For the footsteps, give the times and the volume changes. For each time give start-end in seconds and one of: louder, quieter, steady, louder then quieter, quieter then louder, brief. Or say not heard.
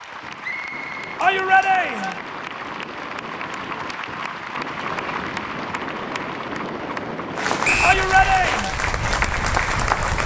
not heard.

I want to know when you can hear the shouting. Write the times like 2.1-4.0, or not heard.
1.2-2.2, 7.8-8.8.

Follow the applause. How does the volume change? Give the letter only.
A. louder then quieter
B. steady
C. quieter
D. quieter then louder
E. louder
E.